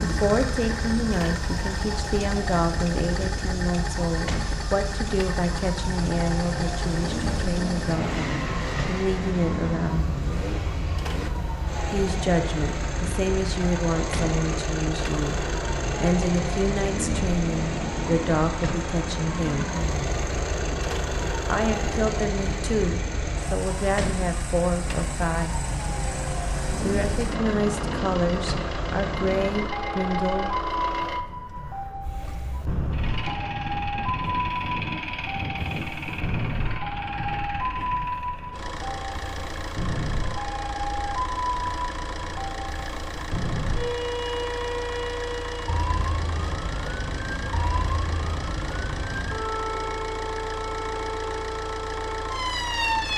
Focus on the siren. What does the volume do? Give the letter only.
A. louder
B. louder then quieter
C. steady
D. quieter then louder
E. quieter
C.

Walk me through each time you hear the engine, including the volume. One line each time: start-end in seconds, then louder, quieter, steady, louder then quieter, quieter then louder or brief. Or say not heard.
0.0-53.1 steady.